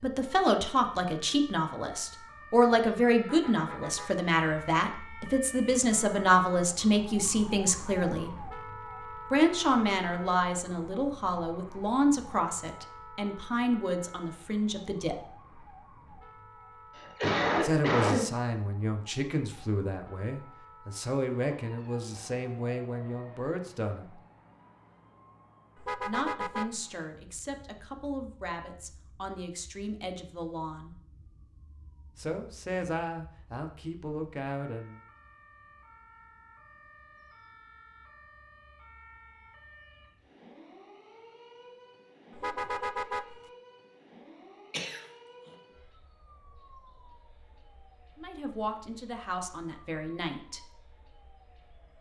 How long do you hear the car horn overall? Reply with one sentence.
You can hear the car horn for 3 seconds altogether.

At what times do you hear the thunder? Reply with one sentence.
The thunder can't be heard in this clip.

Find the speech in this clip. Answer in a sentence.
You can hear the speech from 0.0 to 8.3 s, from 9.3 to 15.2 s, from 17.6 to 24.2 s, from 26.1 to 30.9 s, from 32.1 to 35.0 s and from 48.1 to 50.7 s.